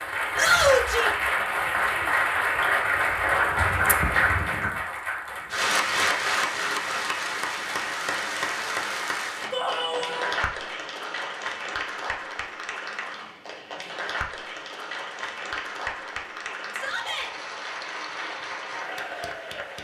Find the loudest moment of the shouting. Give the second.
1 s.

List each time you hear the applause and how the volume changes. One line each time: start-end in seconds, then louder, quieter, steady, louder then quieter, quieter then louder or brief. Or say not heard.
0.0-19.7 quieter.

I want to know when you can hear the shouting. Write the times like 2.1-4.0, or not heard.
0.3-1.1, 9.5-10.3, 16.7-17.3.